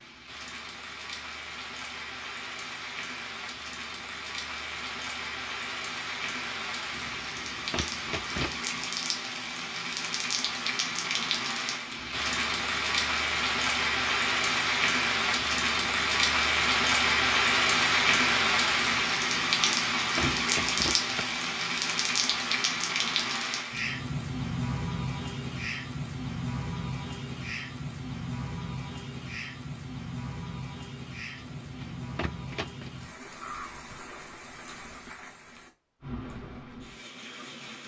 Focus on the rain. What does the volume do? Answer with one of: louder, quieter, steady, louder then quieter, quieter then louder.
louder then quieter.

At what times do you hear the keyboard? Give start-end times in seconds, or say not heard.
not heard.